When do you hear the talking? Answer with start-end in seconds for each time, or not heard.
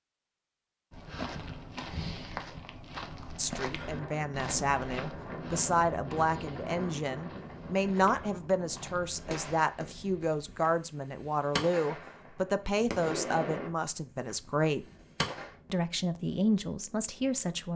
3.4-14.8, 15.7-17.7.